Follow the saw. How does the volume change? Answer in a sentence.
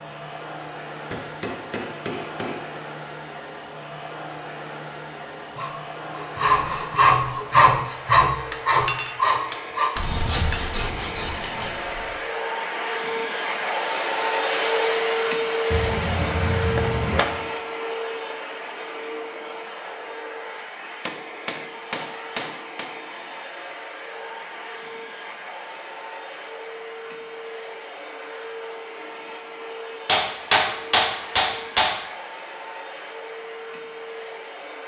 The loudness of the saw goes down.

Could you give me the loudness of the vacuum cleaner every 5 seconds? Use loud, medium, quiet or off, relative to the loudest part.
medium, medium, loud, loud, medium, medium, medium.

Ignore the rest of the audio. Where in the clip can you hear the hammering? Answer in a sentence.
The hammering can be heard from 1.1 to 2.8 s, from 8.5 to 10.7 s, from 15.7 to 17.4 s, from 21.1 to 22.9 s and from 30.1 to 32.0 s.